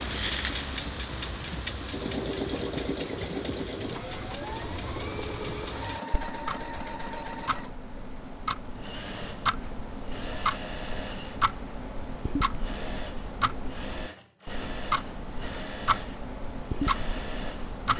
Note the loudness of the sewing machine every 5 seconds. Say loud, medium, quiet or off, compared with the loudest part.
loud, loud, medium, medium.